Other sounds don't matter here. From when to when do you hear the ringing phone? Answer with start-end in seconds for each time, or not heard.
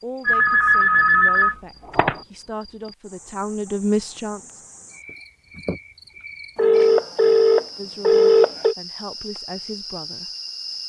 0.2-2.2, 6.5-8.8.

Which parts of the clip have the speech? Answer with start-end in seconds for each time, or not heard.
0.0-4.6, 7.8-10.3.